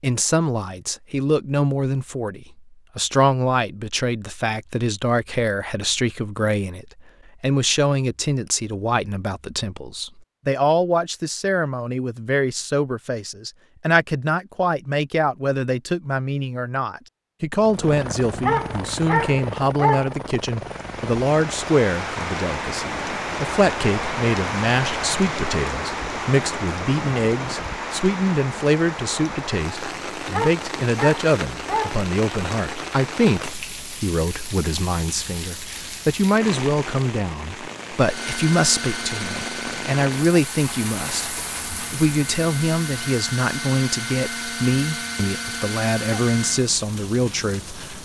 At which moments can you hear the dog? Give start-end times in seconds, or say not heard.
18.4-20.1, 30.3-32.0.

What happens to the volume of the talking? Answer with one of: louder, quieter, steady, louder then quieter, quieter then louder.
steady.